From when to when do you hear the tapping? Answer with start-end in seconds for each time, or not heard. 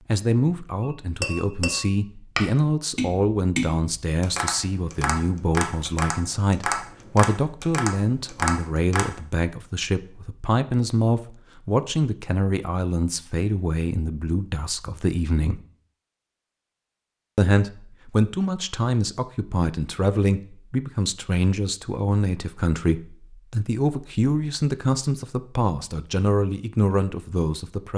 0.8-9.2.